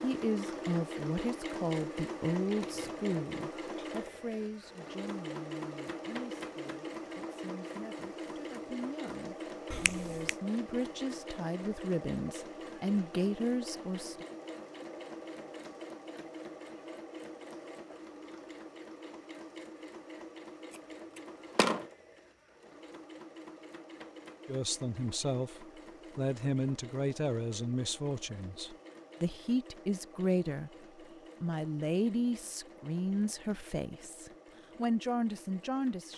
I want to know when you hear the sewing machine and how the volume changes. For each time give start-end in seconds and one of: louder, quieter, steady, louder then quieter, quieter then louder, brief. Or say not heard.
0.0-36.1 quieter.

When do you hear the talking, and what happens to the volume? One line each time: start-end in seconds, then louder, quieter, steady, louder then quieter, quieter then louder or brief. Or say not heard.
0.0-14.2 quieter then louder
24.4-30.7 quieter then louder
31.4-36.1 quieter then louder.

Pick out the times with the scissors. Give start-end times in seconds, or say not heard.
2.5-3.0, 21.1-21.9.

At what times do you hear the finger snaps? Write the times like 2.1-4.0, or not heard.
9.7-10.3.